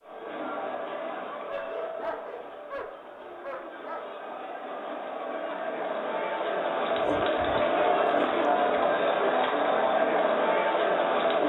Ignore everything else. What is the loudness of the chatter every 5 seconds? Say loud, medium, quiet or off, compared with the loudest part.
quiet, loud, loud.